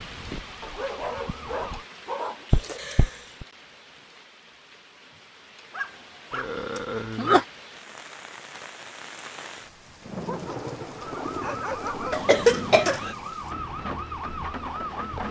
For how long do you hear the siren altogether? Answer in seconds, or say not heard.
6 s.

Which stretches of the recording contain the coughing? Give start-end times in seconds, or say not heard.
2.5-3.5, 6.3-7.5, 12.1-13.2.